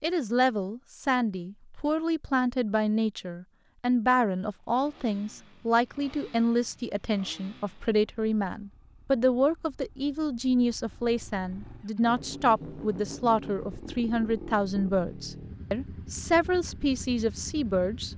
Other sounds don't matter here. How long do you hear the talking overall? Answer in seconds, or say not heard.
18 s.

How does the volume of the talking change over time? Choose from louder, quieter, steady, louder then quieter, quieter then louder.
steady.